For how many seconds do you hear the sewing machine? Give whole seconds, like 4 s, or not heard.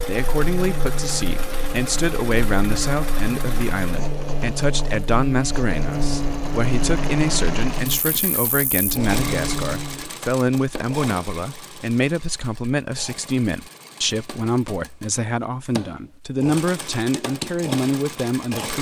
19 s.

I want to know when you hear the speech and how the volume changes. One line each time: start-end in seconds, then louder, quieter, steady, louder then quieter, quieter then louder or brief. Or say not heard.
0.1-18.7 steady.